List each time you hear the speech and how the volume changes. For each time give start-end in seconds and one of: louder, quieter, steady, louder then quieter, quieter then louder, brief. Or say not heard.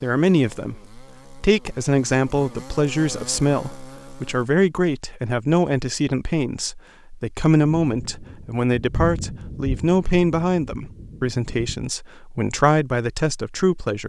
0.0-14.0 steady.